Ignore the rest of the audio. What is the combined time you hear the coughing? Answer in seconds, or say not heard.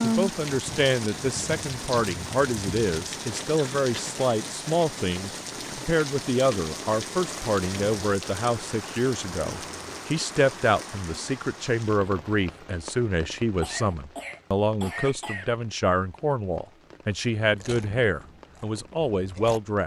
3 s.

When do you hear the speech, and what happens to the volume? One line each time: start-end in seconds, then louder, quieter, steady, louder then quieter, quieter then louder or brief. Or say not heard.
0.0-19.8 steady.